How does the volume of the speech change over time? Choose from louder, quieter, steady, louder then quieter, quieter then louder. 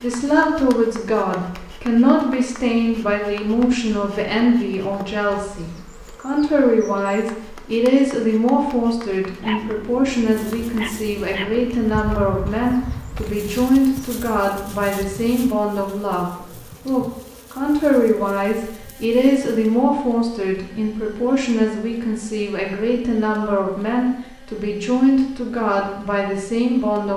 steady.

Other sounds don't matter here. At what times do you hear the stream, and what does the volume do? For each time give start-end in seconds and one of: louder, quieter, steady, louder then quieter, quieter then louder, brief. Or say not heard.
not heard.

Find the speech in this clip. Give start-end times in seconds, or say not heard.
0.0-27.1.